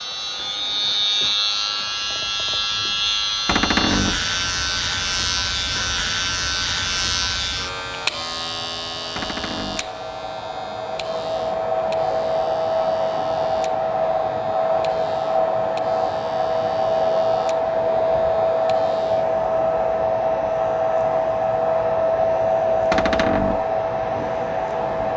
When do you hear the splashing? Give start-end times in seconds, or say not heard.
not heard.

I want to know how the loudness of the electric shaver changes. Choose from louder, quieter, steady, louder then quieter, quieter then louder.
quieter.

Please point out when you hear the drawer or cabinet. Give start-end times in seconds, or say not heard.
3.5-4.2, 9.2-9.9, 22.9-23.6.